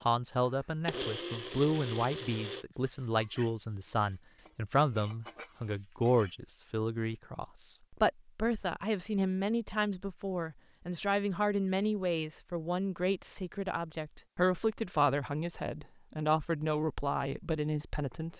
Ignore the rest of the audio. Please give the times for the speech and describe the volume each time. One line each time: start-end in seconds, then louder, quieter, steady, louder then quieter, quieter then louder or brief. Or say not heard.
0.1-18.3 steady.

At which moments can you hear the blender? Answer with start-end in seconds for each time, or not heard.
0.0-2.6.